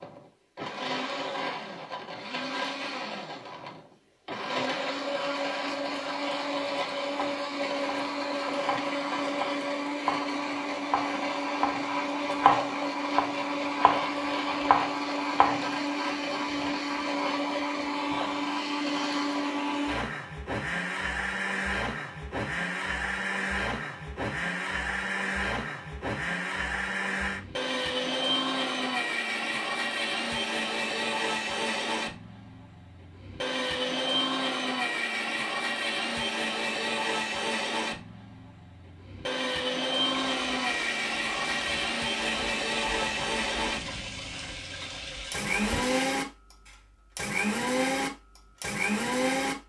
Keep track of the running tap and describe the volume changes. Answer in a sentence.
The loudness of the running tap stays about the same.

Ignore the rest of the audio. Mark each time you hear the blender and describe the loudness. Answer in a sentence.
The blender can be heard from 0.0 to 49.5 s, at a steady volume.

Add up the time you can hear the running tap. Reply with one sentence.
The running tap can be heard for 6 seconds in total.